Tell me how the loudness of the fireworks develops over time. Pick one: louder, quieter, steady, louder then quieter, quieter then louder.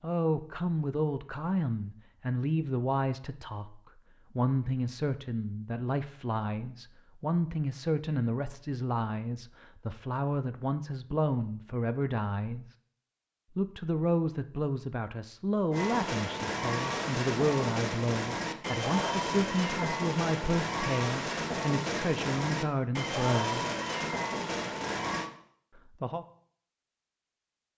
steady.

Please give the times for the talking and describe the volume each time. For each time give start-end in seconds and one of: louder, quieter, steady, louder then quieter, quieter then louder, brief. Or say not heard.
0.0-12.8 steady
13.6-23.6 steady
25.8-26.2 brief.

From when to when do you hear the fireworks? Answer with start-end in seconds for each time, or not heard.
15.7-25.3.